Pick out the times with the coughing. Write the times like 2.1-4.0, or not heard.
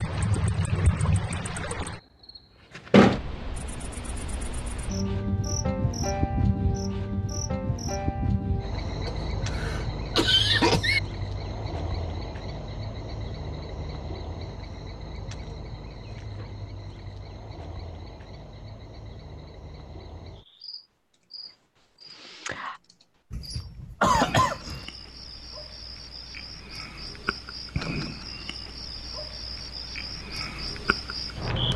9.1-11.0, 23.3-24.9.